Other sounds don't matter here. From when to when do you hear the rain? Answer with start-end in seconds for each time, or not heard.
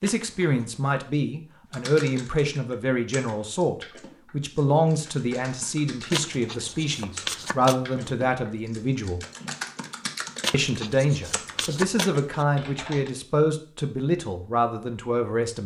not heard.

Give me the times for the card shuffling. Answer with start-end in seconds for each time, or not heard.
0.0-0.8, 6.1-8.2, 10.4-12.4.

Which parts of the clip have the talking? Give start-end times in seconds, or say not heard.
0.0-9.2, 10.5-15.6.